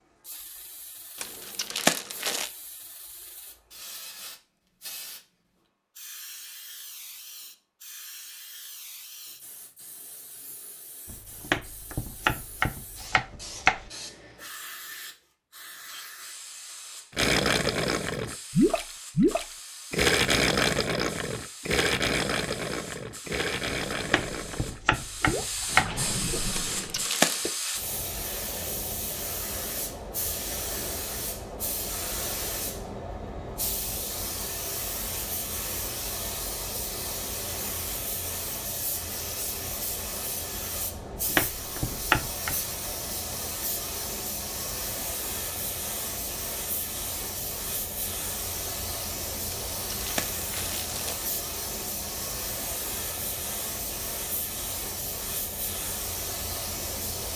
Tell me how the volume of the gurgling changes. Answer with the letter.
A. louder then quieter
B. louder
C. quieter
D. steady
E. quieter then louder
C.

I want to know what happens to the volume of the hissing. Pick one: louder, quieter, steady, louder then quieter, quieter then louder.
louder.